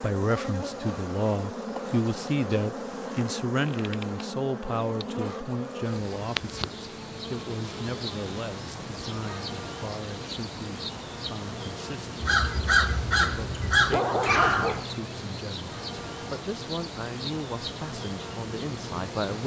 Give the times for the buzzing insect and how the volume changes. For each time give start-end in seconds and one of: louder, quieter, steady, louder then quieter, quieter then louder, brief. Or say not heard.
0.0-19.4 steady.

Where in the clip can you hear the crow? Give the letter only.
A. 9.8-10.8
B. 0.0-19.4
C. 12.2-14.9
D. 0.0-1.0
C.